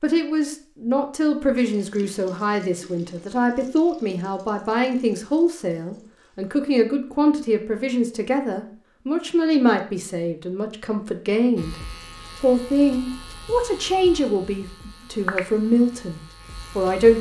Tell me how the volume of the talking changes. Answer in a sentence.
The loudness of the talking stays about the same.